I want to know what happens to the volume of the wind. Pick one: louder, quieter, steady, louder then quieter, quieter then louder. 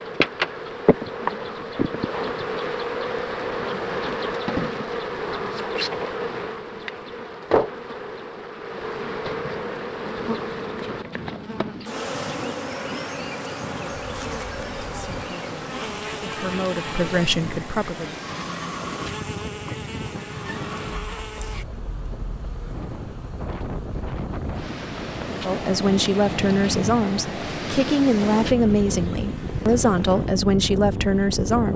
louder.